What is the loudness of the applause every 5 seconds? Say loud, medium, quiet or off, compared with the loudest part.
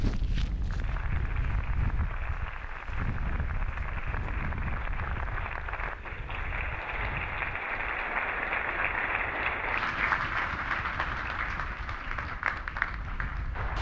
medium, loud, loud.